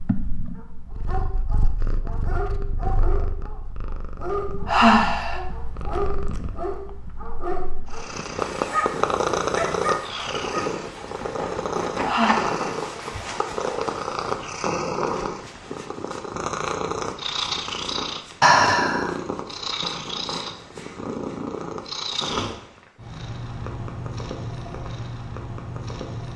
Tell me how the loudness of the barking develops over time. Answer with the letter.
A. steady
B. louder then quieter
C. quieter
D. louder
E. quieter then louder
D.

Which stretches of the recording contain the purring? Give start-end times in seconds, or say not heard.
0.0-26.3.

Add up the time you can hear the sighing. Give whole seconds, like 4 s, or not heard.
2 s.